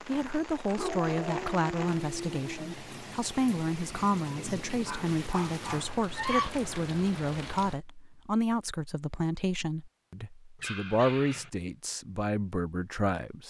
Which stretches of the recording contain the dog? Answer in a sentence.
The dog can be heard from 0.8 to 2.8 s, from 4.8 to 6.5 s and from 10.6 to 11.5 s.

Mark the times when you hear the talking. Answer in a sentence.
You can hear the talking from 0.1 to 13.4 s.